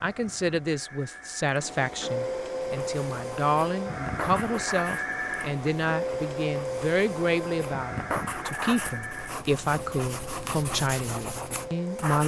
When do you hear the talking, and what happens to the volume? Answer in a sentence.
You can hear the talking from 0.0 to 12.2 s, at a steady volume.